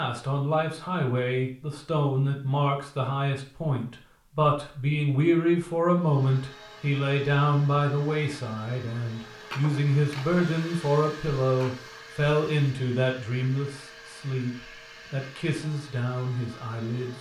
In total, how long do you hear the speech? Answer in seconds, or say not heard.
17 s.